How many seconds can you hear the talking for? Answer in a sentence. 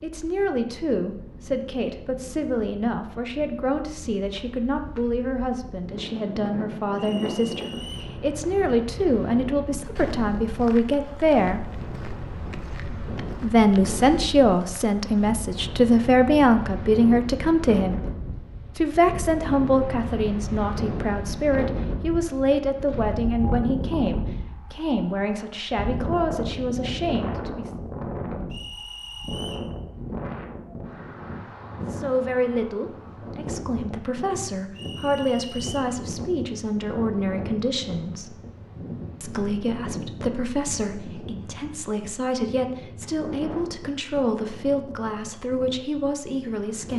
The talking can be heard for 40 seconds in total.